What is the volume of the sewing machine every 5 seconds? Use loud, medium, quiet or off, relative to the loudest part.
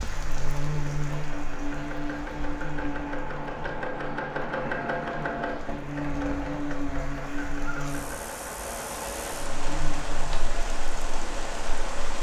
loud, loud, off.